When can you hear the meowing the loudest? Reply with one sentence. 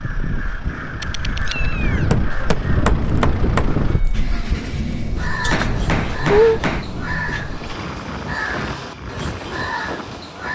The volume of the meowing peaks at 6 seconds.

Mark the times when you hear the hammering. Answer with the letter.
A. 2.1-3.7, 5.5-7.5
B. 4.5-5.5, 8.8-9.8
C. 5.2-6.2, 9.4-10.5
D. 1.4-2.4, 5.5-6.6
A.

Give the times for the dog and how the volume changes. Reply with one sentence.
The dog can't be heard in this clip.